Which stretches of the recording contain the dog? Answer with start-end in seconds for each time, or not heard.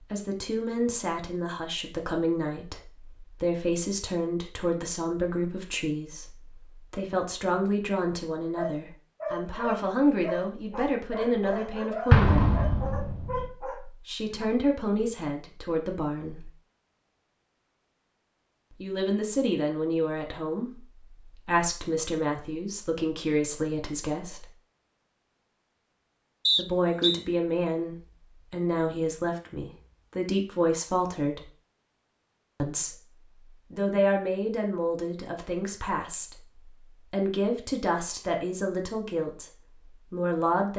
8.6-14.4.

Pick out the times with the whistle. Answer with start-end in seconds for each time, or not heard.
26.4-27.2.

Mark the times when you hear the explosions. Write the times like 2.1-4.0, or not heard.
12.1-13.4.